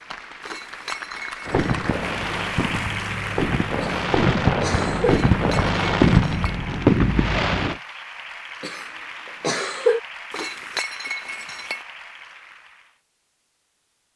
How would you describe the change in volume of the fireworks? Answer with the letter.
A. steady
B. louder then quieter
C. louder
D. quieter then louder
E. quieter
C.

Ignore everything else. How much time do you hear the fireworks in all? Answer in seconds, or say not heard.
6 s.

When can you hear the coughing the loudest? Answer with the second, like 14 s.
10 s.